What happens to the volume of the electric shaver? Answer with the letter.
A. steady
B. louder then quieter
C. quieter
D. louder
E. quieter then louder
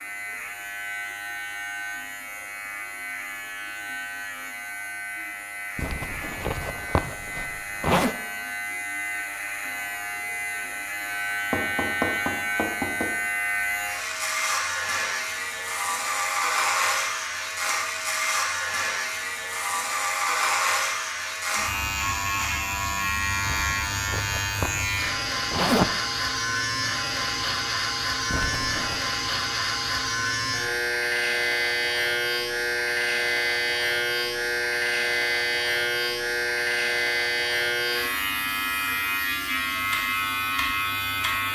D.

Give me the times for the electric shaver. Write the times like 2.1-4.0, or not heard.
0.0-41.5.